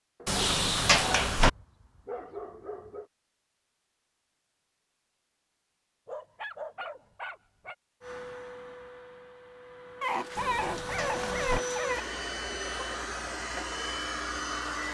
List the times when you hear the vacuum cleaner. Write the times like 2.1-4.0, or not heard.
8.0-14.8.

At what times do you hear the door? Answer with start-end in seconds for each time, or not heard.
0.2-1.5, 10.3-11.6.